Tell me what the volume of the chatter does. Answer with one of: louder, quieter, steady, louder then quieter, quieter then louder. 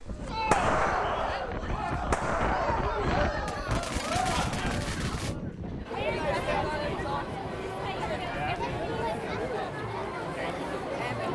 steady.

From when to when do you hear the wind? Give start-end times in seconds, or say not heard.
0.0-9.6.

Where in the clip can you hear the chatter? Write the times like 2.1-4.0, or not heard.
0.1-11.2.